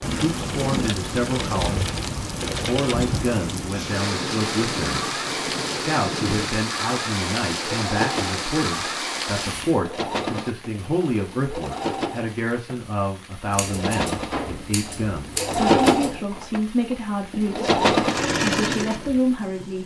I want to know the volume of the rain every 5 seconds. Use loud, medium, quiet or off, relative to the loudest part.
loud, loud, quiet, quiet.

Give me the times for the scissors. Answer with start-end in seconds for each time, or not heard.
13.5-16.1.